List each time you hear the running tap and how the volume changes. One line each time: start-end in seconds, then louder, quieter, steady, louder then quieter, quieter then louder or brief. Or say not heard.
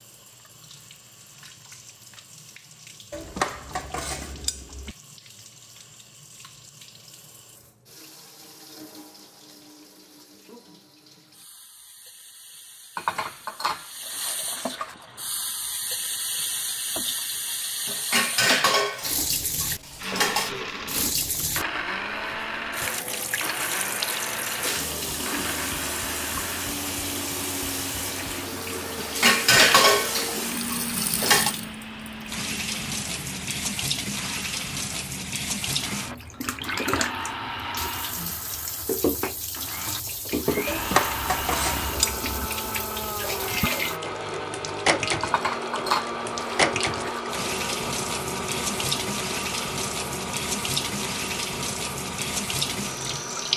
0.0-53.5 louder.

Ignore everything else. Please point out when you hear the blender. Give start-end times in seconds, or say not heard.
19.9-53.5.